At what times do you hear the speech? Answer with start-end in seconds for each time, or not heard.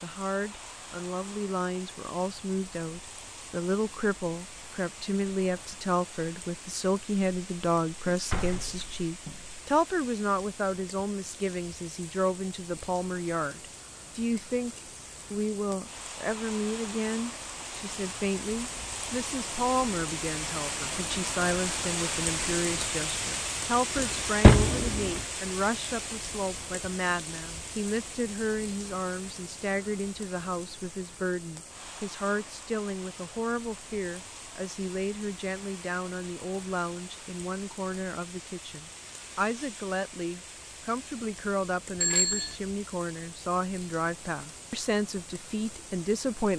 0.0-46.5.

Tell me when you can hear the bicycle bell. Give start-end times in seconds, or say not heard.
42.0-42.5.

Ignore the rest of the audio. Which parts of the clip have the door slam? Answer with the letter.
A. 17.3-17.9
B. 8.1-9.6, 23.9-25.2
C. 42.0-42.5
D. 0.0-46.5
B.